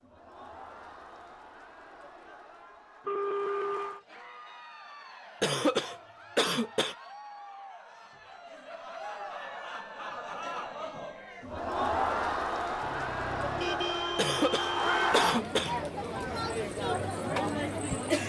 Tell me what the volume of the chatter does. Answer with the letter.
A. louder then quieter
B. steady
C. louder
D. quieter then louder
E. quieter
C.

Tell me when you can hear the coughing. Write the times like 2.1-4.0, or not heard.
5.4-7.0, 14.2-15.8.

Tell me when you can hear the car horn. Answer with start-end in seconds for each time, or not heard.
3.0-4.0, 12.8-15.2.